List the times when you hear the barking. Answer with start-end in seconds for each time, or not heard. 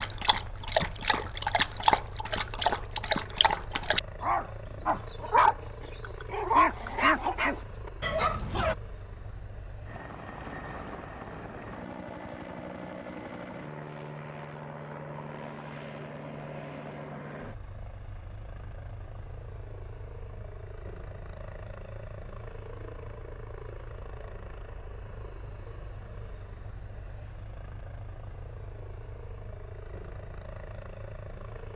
0.0-8.8.